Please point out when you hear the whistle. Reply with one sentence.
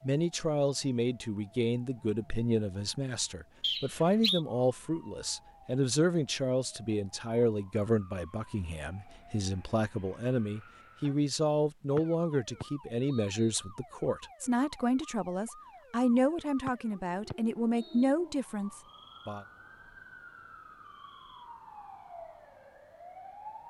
The whistle can be heard from 3.6 to 4.4 s, from 11.9 to 13.3 s and from 16.6 to 18.1 s.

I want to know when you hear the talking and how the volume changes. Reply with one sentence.
You can hear the talking from 0.0 to 19.4 s, at a steady volume.